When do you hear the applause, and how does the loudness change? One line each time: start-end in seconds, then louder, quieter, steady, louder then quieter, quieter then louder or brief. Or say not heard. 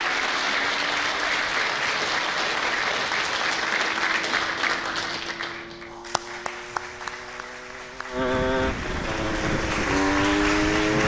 0.0-11.0 quieter then louder.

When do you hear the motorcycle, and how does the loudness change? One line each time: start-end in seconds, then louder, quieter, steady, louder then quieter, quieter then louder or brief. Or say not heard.
0.1-11.0 louder.